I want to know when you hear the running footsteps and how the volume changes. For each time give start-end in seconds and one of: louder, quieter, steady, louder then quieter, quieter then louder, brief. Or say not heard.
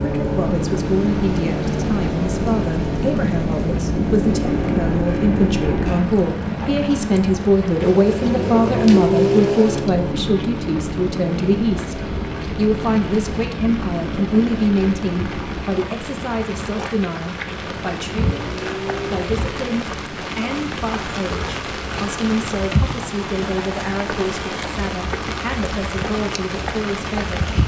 not heard.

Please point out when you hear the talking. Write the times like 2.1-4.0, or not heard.
0.0-27.4.